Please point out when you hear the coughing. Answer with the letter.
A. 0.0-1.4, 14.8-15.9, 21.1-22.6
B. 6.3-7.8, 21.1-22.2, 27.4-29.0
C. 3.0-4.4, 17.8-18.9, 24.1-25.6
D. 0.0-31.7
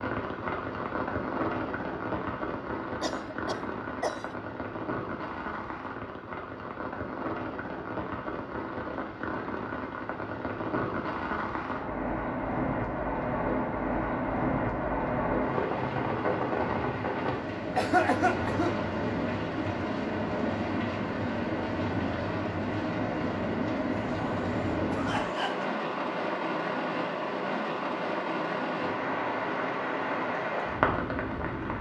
C.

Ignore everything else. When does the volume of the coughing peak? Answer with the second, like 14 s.
18 s.